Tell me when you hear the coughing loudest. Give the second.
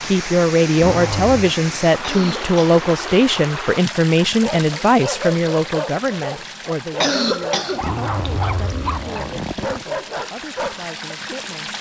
7 s.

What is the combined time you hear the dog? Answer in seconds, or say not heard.
7 s.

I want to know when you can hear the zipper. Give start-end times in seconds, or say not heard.
0.8-1.6, 7.8-9.8.